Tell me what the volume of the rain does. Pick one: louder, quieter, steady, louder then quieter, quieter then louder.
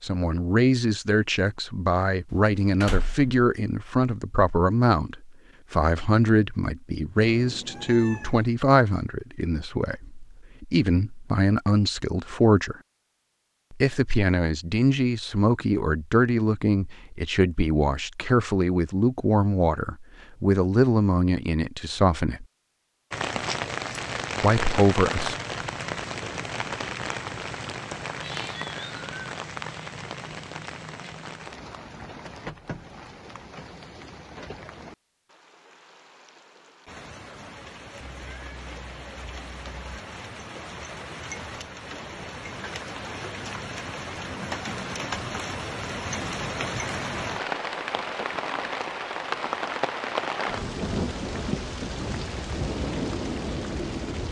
quieter then louder.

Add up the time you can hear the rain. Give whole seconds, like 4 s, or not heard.
31 s.